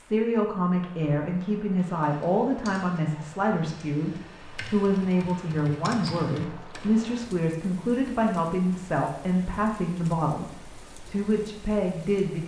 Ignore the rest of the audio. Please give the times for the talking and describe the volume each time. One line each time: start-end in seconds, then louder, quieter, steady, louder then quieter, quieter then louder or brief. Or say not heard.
0.0-12.4 steady.